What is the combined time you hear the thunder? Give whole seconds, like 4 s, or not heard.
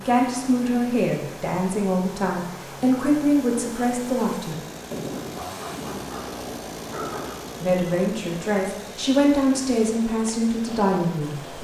3 s.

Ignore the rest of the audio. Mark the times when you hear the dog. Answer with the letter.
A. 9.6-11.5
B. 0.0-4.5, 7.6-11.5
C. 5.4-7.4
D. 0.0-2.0
C.